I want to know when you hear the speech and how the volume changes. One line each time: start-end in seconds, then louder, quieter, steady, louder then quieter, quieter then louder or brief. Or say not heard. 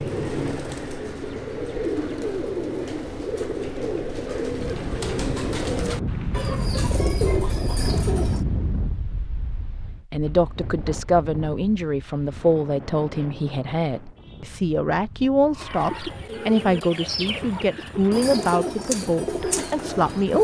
10.1-20.4 steady.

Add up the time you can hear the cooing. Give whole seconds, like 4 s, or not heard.
13 s.